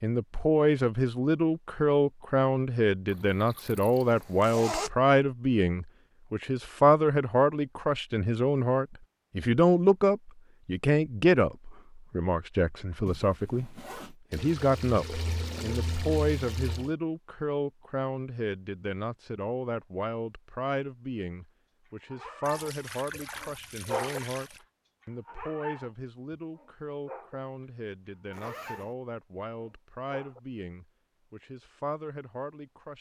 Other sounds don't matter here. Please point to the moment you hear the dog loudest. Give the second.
24 s.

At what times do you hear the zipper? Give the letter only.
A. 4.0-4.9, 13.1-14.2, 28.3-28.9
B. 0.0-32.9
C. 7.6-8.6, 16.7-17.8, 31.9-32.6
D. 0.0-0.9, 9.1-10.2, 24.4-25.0
A.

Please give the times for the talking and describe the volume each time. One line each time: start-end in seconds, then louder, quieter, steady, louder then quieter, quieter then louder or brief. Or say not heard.
0.0-32.9 quieter.